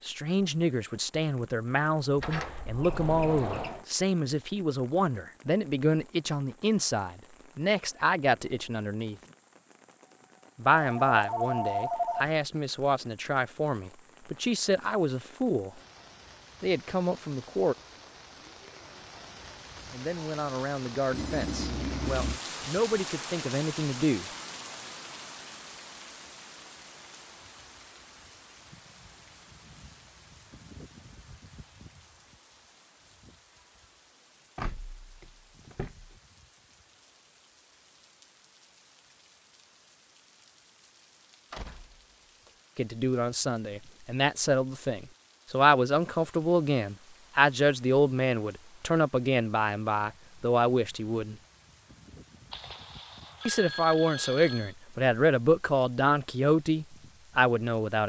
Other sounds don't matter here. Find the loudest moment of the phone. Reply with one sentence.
The volume of the phone peaks at 12 seconds.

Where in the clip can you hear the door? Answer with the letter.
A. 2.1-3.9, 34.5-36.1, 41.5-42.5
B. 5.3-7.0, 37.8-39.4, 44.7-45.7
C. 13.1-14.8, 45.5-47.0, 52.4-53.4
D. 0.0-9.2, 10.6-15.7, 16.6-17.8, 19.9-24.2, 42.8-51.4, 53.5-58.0
A.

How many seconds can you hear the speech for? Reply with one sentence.
The speech can be heard for 33 seconds in total.